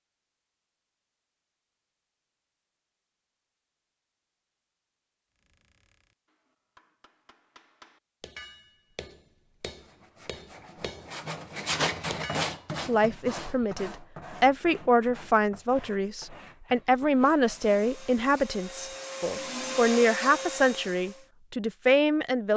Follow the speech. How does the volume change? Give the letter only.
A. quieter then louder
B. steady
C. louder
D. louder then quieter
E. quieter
B.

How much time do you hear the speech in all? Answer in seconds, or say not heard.
10 s.